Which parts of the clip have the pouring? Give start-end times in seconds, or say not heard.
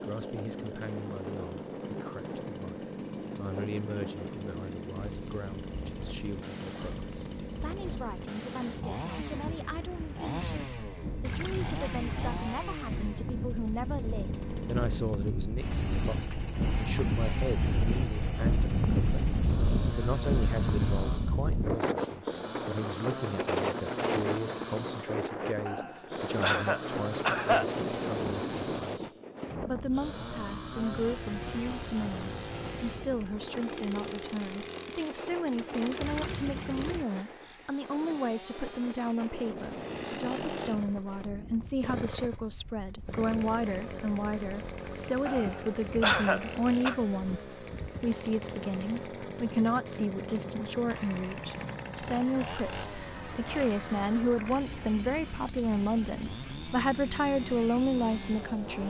11.2-12.4, 36.0-37.0.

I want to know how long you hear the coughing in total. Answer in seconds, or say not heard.
4 s.